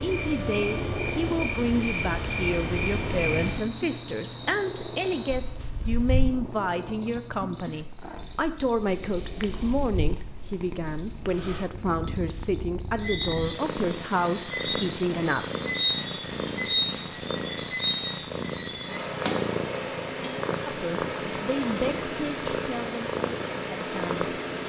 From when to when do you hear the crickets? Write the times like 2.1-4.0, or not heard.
0.0-24.6.